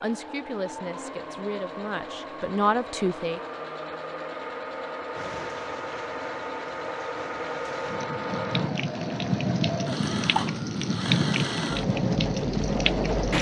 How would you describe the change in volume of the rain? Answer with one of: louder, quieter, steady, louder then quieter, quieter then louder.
louder.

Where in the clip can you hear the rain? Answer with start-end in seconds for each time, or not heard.
5.2-13.3.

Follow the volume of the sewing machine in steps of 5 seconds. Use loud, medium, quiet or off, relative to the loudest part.
medium, loud, loud.